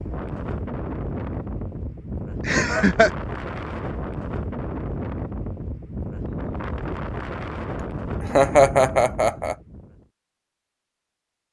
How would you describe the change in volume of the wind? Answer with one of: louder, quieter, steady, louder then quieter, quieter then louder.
steady.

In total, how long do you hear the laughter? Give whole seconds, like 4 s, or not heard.
2 s.